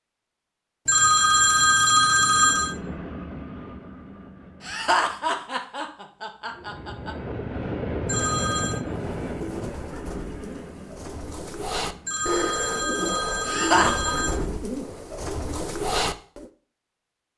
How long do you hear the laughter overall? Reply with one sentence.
You can hear the laughter for 3 seconds altogether.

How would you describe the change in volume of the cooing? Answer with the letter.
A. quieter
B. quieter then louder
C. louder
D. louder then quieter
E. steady
C.